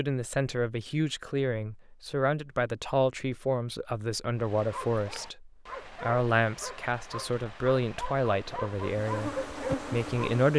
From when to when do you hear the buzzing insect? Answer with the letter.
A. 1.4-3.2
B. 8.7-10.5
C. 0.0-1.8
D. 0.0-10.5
B.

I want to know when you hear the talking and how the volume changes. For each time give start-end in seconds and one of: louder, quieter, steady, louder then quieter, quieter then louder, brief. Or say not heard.
0.0-10.5 steady.